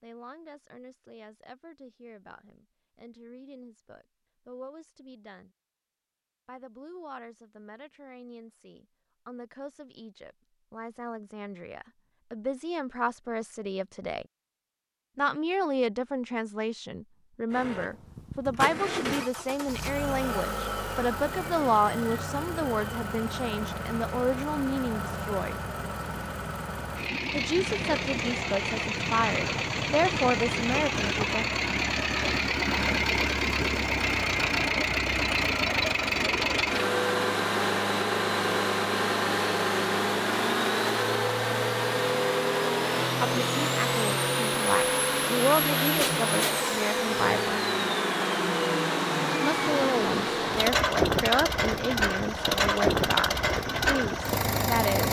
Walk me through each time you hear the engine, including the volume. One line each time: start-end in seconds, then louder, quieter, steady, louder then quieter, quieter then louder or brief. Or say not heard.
17.5-55.0 louder.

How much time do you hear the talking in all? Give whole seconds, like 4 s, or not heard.
38 s.